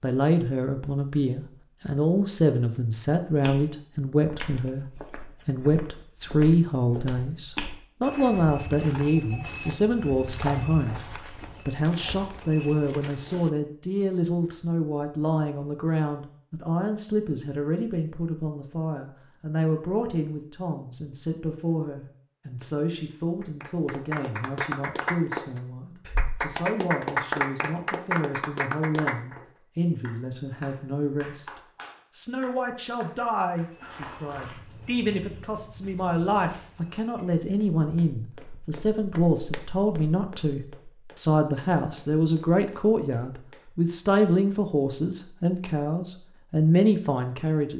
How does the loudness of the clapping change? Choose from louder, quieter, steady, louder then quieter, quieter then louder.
quieter.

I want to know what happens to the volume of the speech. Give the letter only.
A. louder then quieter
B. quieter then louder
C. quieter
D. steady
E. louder
B.